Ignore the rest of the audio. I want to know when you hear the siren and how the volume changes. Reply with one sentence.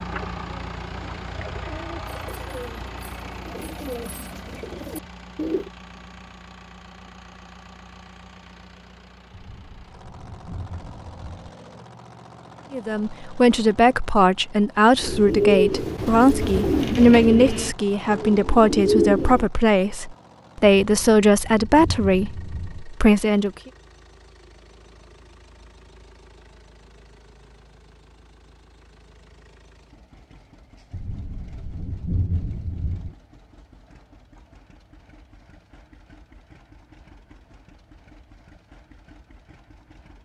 The siren can't be heard in this clip.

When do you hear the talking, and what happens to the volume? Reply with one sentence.
The talking can be heard from 12.7 to 23.5 s, at a steady volume.